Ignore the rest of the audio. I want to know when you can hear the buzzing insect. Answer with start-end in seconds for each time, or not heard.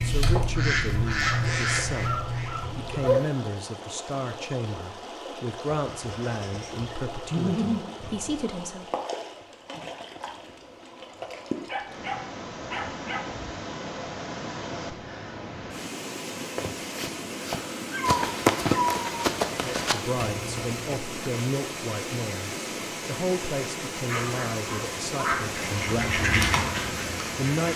not heard.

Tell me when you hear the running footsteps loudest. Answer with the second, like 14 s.
19 s.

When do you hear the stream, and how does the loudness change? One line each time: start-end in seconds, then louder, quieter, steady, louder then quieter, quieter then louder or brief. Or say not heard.
0.0-27.7 louder.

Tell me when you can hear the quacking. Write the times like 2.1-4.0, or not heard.
0.0-3.0, 25.3-27.7.